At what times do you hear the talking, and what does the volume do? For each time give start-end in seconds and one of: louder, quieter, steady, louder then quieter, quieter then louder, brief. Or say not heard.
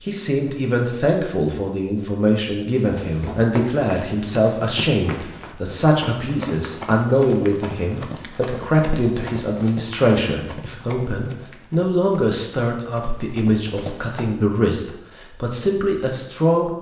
0.0-16.7 steady.